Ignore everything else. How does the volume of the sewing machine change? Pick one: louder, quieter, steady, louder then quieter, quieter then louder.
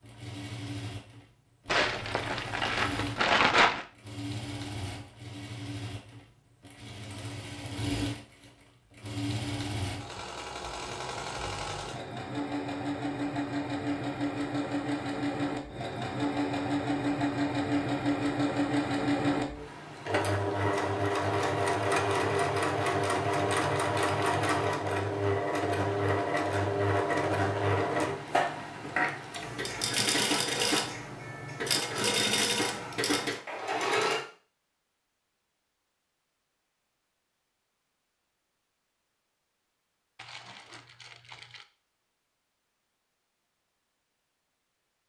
louder.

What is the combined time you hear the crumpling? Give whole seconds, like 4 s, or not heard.
4 s.